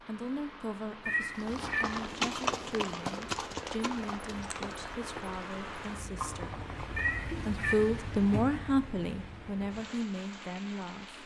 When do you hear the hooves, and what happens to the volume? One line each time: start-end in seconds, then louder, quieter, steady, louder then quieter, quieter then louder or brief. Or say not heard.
1.3-7.2 quieter then louder.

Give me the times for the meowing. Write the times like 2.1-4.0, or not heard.
1.1-1.9, 7.0-7.8.